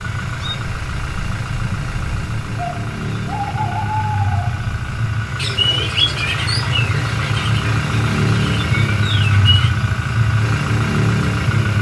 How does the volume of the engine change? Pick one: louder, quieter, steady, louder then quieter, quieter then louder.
louder.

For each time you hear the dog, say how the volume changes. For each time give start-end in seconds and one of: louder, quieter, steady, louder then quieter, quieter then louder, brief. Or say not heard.
not heard.